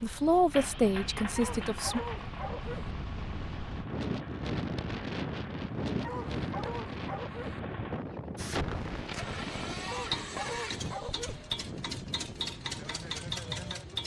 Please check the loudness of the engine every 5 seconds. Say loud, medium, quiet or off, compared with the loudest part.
medium, medium, loud.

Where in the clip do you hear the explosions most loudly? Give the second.
9 s.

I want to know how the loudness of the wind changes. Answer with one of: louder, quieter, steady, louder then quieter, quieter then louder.
louder then quieter.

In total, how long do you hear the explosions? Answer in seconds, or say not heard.
3 s.